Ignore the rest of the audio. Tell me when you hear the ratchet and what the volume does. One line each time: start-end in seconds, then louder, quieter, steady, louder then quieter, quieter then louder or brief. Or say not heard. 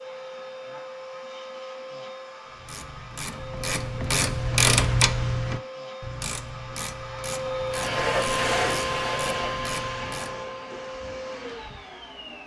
2.5-10.4 louder then quieter.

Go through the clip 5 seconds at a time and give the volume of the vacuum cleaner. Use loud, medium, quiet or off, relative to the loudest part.
medium, loud, medium.